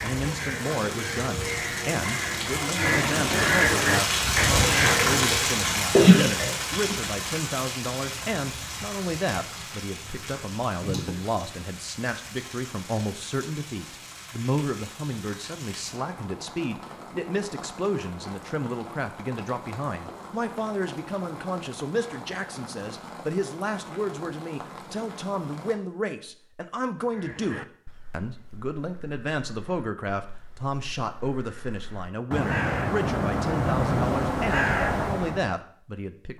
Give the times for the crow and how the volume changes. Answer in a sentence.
You can hear the crow from 0.0 to 5.5 s, getting louder; and from 27.1 to 35.5 s, getting quieter then louder.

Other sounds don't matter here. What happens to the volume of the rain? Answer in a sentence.
The loudness of the rain goes down.